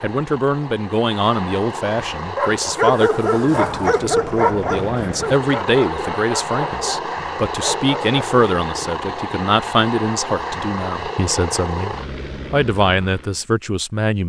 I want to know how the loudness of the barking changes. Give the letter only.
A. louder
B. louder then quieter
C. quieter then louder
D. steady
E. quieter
E.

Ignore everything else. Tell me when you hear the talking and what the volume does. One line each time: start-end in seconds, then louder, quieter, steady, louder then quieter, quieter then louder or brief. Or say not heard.
0.0-14.2 steady.